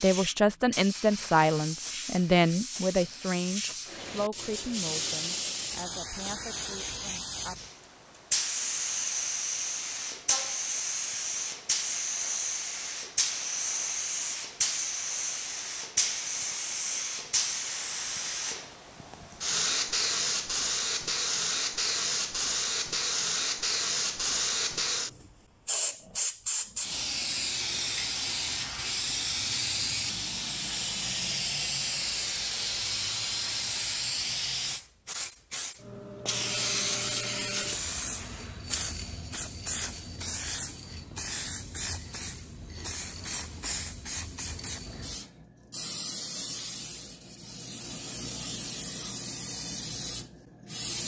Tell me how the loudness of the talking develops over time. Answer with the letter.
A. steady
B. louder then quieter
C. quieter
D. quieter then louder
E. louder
C.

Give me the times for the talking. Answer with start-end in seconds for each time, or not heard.
0.0-7.6.